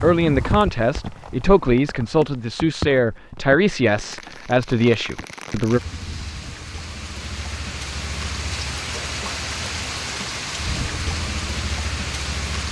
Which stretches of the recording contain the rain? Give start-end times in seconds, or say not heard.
0.0-12.6.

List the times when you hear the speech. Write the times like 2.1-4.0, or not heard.
0.0-5.8.